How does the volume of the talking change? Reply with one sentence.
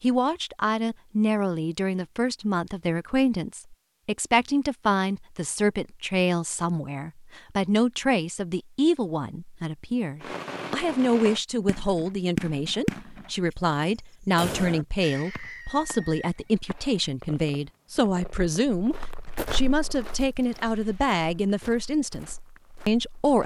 The loudness of the talking stays about the same.